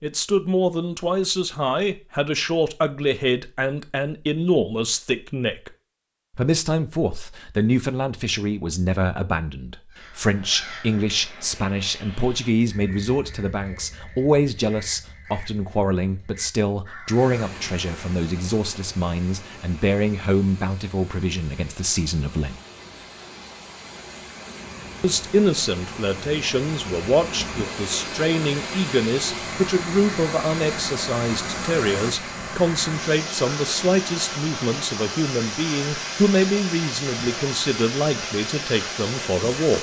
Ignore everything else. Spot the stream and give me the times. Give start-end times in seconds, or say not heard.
17.1-39.7.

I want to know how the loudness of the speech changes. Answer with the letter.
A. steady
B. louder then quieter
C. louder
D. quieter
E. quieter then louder
A.